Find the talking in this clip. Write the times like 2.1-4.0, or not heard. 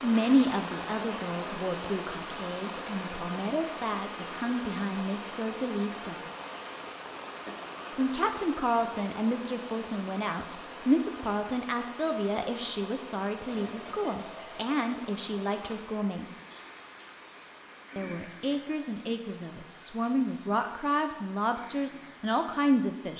0.0-6.2, 8.0-16.4, 17.9-23.1.